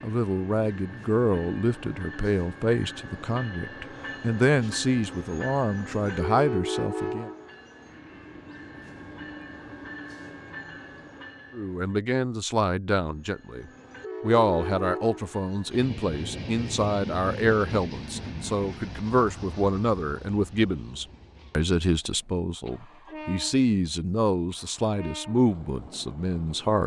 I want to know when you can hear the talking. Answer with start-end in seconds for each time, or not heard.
0.0-7.3, 11.6-26.8.